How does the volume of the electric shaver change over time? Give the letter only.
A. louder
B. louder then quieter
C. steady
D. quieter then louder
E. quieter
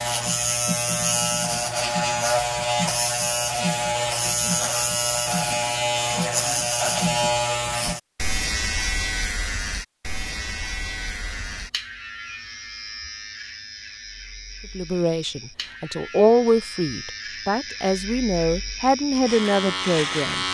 D.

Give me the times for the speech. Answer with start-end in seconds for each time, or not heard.
14.8-20.4.